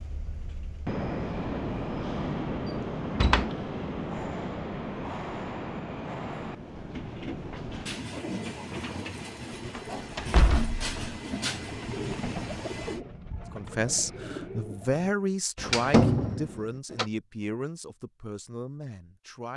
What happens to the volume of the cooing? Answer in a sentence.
The volume of the cooing stays about the same.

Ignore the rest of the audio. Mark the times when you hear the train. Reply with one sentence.
The train can be heard from 0.0 to 13.0 s.